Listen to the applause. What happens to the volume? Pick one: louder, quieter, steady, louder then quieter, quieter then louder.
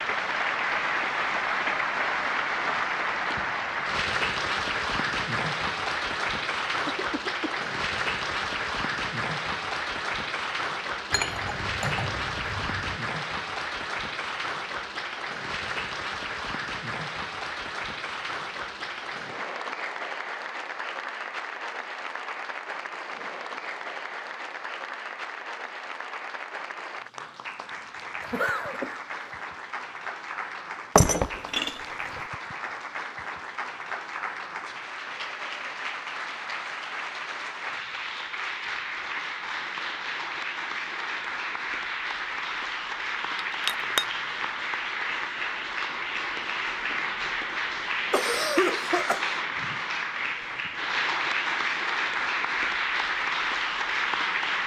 quieter then louder.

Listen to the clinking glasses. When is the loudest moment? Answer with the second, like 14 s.
31 s.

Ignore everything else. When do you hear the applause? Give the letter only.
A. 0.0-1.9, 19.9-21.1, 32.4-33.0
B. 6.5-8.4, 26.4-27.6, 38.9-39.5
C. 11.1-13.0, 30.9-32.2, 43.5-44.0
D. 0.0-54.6
D.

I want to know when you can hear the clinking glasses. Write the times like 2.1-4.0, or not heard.
11.1-13.0, 30.9-32.2, 43.5-44.0.